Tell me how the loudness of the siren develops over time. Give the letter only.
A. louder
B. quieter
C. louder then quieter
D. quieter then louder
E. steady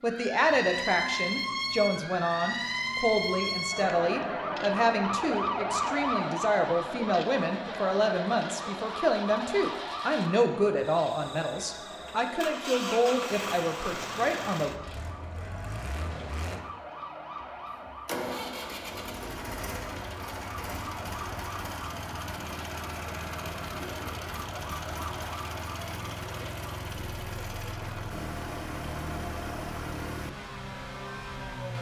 B.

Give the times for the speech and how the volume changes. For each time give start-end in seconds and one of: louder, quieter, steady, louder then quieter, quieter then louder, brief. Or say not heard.
0.0-14.7 steady.